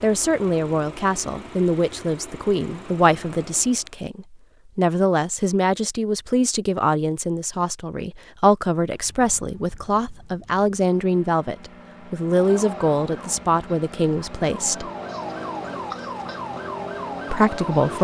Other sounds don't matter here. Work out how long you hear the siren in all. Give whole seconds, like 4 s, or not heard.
6 s.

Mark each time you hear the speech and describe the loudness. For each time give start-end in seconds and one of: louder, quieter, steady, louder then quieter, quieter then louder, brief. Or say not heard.
0.0-14.9 steady
17.3-17.9 brief.